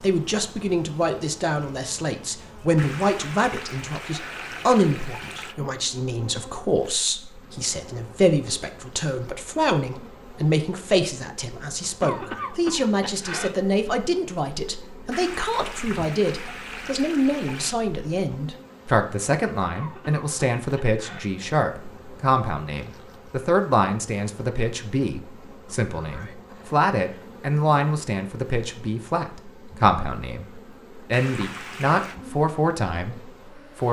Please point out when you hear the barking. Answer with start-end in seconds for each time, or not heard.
not heard.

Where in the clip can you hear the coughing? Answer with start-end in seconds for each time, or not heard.
12.0-13.6, 19.8-21.2.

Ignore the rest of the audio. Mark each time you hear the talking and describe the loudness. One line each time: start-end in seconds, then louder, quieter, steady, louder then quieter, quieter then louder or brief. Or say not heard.
0.0-33.8 steady.